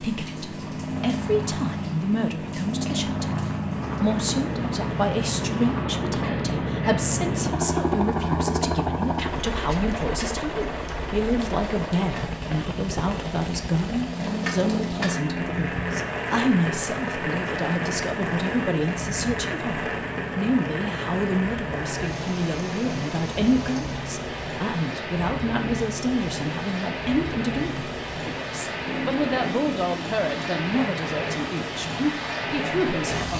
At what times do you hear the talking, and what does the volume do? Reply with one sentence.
The talking can be heard from 0.0 to 33.3 s, at a steady volume.